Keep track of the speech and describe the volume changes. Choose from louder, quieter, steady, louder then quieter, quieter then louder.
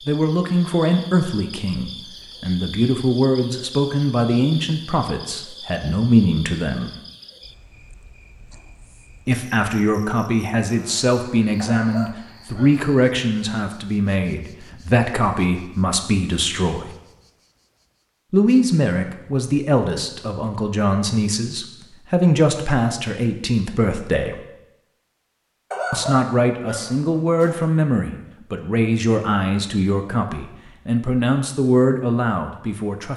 steady.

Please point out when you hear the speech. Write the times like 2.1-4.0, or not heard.
0.1-6.9, 9.2-16.9, 18.3-24.4, 25.9-33.1.